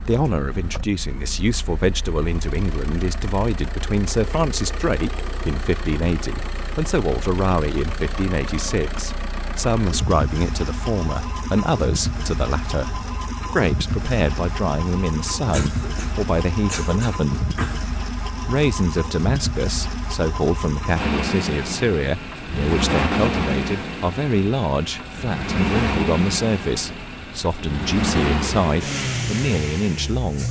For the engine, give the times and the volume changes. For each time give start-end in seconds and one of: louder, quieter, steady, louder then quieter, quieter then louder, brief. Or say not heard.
0.0-30.4 louder.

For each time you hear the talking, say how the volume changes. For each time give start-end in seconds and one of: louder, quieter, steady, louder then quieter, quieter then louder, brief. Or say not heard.
0.0-17.4 steady
18.2-30.4 steady.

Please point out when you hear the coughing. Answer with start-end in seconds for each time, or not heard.
15.5-17.8.